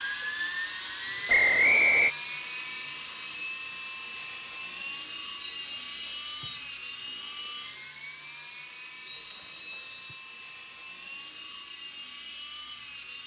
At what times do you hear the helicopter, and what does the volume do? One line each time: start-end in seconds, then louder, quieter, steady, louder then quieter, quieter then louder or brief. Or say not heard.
0.0-13.2 quieter.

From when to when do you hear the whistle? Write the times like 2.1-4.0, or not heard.
1.2-2.1, 5.4-6.7, 9.1-10.2.